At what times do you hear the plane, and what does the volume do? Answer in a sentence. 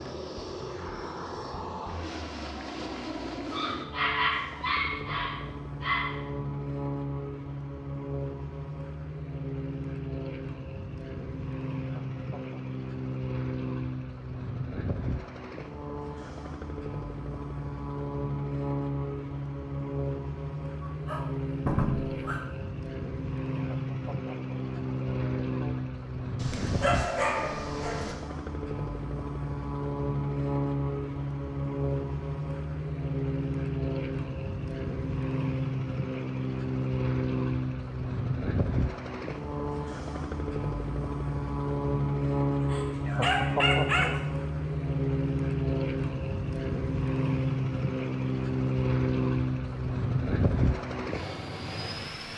The plane can be heard from 0.0 to 52.3 s, getting louder.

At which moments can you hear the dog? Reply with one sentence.
You can hear the dog from 3.5 to 6.2 s, from 20.9 to 22.4 s, from 26.4 to 28.1 s and from 42.6 to 44.1 s.